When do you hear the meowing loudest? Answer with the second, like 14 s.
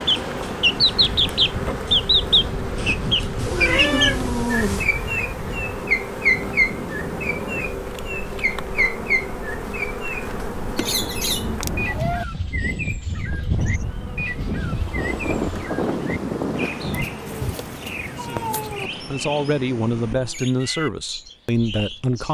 4 s.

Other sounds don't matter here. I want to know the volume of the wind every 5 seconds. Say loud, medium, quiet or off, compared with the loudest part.
medium, medium, medium, loud, off.